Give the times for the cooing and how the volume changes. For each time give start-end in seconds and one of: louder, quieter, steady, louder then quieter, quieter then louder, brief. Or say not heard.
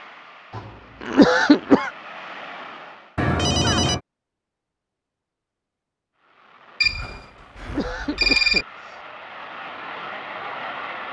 not heard.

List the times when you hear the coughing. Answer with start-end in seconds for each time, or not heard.
0.6-1.9, 7.1-8.9.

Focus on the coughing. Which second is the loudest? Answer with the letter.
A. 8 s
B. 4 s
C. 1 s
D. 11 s
C.